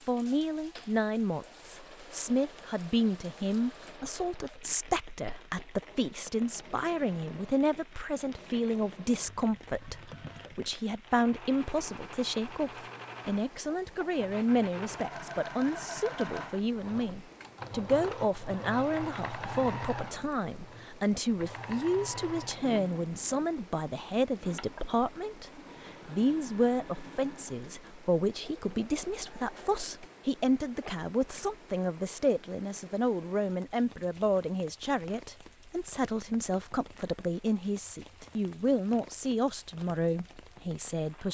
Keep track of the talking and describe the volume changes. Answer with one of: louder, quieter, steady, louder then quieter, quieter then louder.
steady.